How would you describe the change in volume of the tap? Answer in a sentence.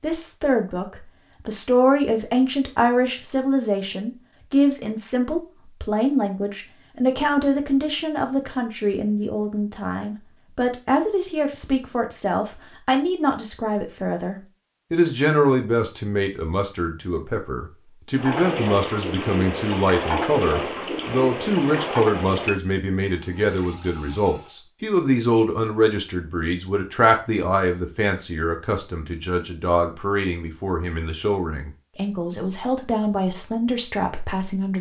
The volume of the tap goes down.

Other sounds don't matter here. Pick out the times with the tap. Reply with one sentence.
You can hear the tap from 18.1 to 24.6 s.